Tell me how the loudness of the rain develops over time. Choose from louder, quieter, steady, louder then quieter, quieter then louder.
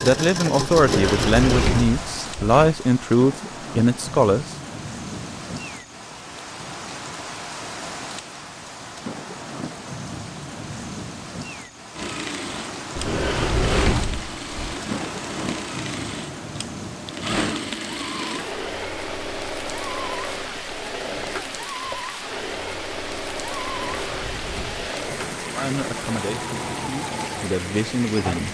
steady.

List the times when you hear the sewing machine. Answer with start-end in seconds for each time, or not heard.
0.0-1.6, 11.9-28.4.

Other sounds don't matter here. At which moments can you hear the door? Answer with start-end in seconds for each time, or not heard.
0.8-2.8, 12.9-14.8, 23.6-24.9.